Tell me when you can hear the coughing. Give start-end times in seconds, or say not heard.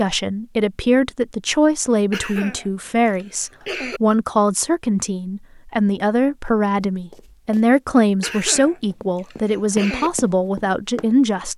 2.1-4.0, 8.2-10.1.